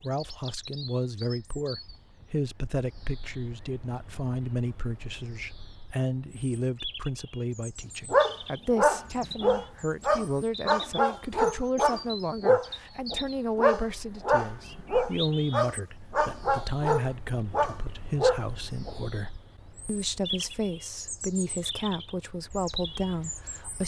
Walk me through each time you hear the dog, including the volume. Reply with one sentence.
The dog can be heard from 8.1 to 18.9 s, at a steady volume.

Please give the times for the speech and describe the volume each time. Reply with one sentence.
The speech can be heard from 0.0 to 23.8 s, at a steady volume.